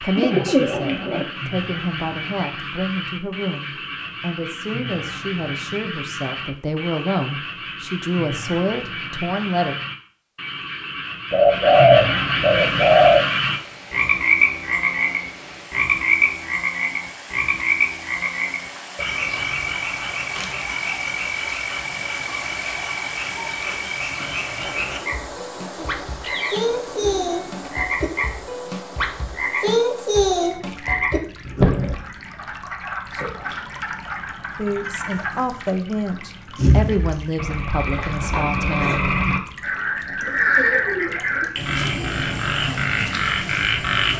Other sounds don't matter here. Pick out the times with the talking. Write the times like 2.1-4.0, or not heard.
0.0-9.8, 34.5-39.1.